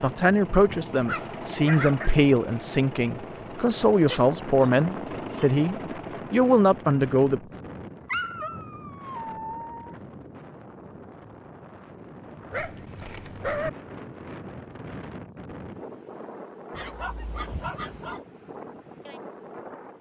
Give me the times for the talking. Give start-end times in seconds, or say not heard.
0.0-7.4.